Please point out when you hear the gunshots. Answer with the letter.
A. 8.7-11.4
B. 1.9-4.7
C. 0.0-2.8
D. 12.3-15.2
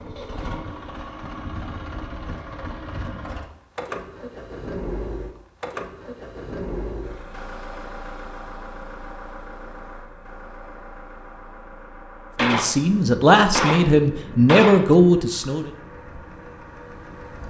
D.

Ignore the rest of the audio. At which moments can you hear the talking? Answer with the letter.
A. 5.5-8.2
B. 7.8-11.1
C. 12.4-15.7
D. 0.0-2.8
C.